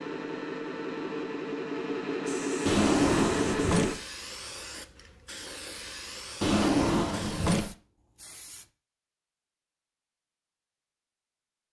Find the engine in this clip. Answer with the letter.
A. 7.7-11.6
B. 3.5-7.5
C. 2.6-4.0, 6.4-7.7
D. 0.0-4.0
D.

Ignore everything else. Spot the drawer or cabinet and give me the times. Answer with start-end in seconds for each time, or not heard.
2.6-4.0, 6.4-7.7.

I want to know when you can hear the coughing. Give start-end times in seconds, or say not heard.
not heard.